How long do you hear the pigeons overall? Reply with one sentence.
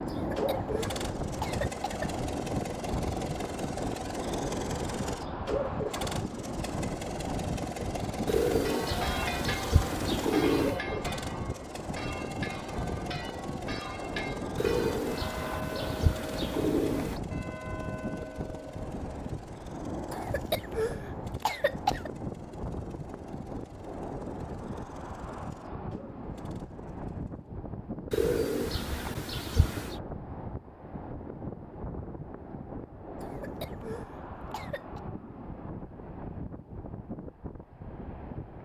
The pigeons can be heard for 7 seconds in total.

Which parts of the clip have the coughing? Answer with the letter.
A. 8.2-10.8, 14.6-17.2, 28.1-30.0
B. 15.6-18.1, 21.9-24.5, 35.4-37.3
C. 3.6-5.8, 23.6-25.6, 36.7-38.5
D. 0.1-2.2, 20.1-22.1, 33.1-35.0
D.